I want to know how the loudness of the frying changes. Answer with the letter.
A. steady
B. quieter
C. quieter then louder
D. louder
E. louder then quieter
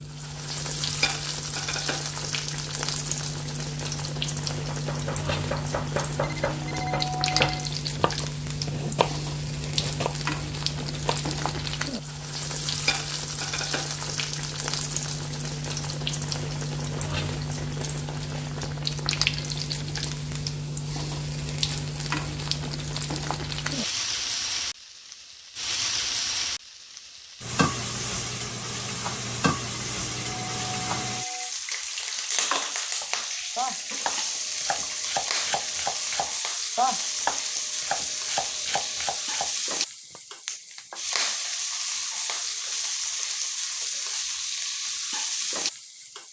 A.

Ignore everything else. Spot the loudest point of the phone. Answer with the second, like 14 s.
7 s.